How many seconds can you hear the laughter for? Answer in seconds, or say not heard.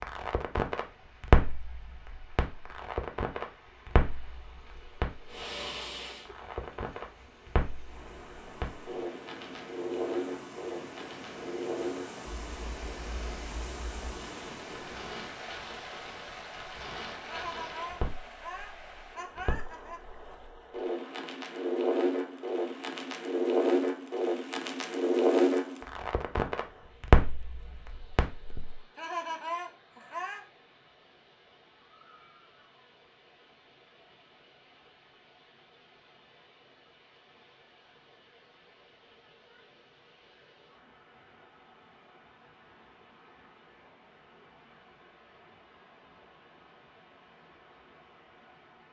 4 s.